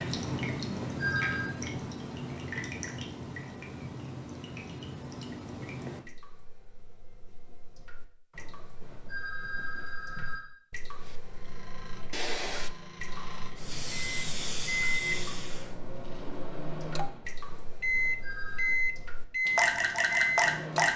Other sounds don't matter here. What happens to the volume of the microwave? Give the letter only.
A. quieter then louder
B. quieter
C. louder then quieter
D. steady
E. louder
E.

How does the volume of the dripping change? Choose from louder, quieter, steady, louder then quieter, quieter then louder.
quieter then louder.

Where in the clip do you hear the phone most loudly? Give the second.
1 s.